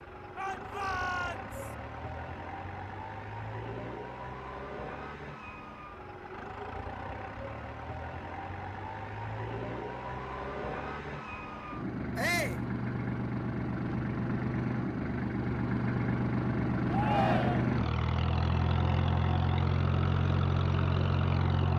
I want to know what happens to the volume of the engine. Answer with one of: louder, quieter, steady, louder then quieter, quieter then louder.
louder.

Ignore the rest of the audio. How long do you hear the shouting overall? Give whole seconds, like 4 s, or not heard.
3 s.